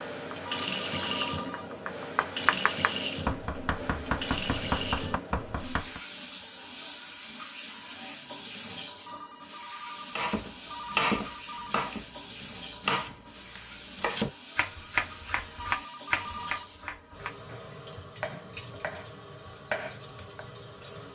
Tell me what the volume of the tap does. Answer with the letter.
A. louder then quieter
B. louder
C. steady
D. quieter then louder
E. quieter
E.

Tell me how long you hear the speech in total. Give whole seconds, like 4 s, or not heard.
not heard.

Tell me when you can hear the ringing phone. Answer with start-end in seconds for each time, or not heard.
0.5-1.7, 9.1-11.8, 15.6-16.7.